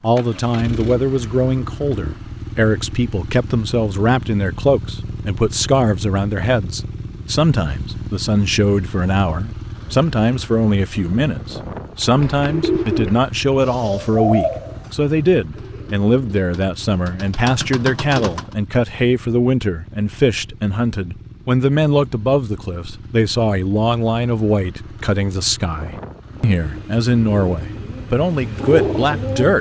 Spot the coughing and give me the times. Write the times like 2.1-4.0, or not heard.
not heard.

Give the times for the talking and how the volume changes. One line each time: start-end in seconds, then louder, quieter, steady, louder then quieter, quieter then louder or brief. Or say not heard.
0.0-29.5 steady.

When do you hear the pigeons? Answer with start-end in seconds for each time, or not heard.
12.0-18.6, 26.4-29.5.